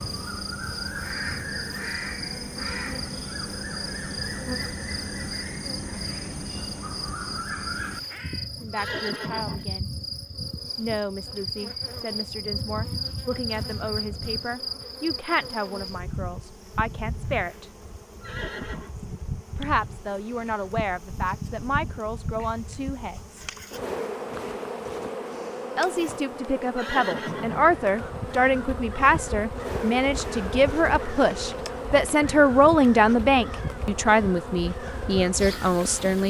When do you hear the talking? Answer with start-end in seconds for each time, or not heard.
8.6-9.9, 10.8-17.7, 19.6-23.4, 25.8-36.2.